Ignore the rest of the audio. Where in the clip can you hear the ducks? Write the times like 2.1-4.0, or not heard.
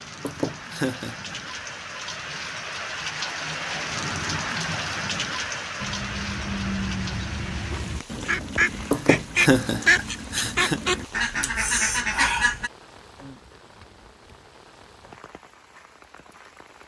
5.8-12.7.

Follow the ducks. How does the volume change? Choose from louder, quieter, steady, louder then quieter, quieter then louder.
louder.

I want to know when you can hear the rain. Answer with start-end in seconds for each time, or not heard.
0.0-16.8.